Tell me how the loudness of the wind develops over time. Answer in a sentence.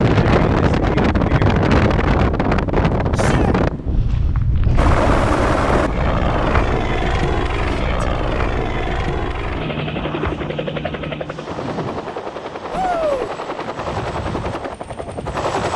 The loudness of the wind goes down.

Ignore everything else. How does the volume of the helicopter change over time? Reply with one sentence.
The loudness of the helicopter goes down.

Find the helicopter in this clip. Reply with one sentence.
The helicopter can be heard from 4.8 to 15.7 s.